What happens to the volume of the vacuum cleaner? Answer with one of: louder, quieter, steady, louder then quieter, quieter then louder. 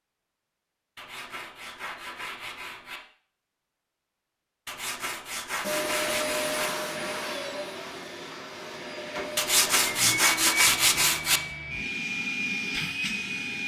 quieter then louder.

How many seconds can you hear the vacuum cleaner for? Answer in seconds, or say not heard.
8 s.